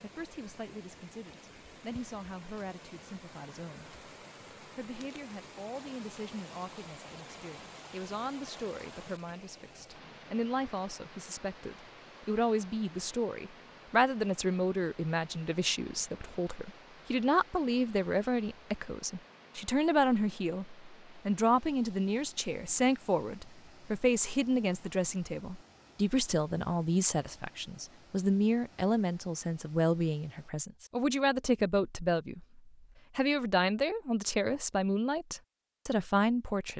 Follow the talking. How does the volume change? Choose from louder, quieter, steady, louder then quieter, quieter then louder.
louder.